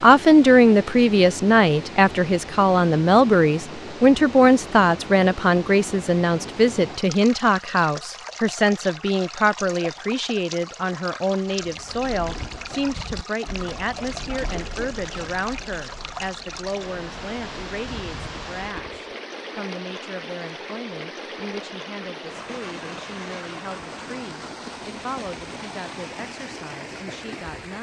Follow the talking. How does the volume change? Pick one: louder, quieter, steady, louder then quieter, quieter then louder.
quieter.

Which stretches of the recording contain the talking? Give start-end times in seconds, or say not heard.
0.0-27.7.